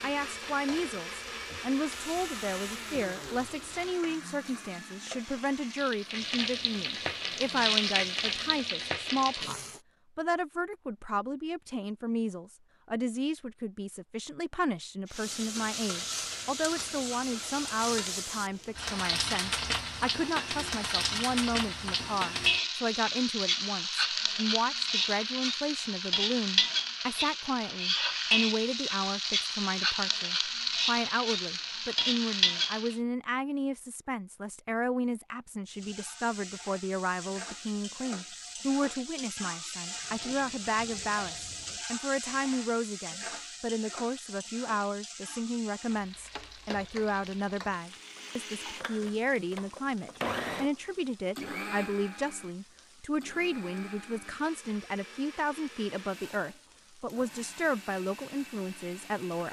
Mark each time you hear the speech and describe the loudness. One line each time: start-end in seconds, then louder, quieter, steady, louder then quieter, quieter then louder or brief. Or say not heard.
0.0-59.4 steady.